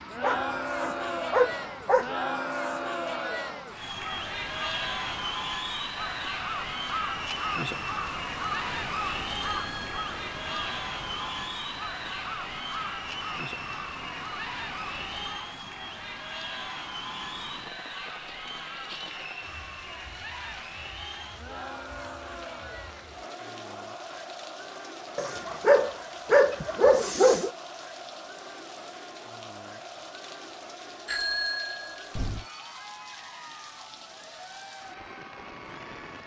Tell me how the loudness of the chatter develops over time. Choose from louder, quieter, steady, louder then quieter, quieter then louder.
quieter.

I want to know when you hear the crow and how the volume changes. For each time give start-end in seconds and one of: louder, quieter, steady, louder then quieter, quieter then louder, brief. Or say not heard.
3.9-15.5 louder then quieter.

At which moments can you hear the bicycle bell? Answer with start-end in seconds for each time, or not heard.
9.4-9.9, 31.1-32.5.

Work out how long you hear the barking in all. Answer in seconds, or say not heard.
4 s.